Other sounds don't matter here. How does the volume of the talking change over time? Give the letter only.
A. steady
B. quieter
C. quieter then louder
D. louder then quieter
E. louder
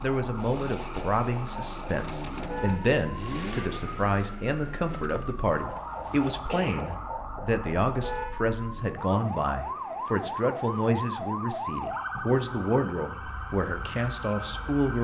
A.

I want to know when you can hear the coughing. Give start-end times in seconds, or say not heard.
6.3-7.1.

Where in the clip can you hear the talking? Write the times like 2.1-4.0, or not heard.
0.0-15.0.